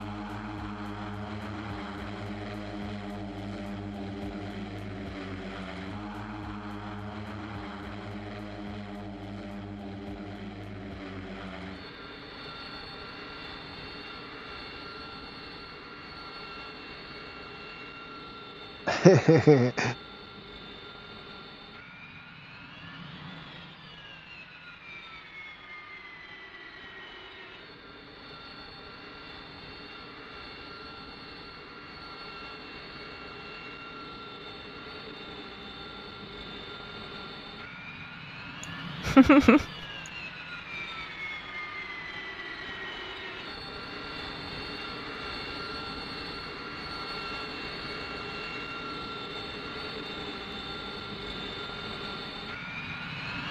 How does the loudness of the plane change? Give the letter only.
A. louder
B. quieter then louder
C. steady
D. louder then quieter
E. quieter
B.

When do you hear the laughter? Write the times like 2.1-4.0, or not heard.
18.9-19.9, 38.6-40.1.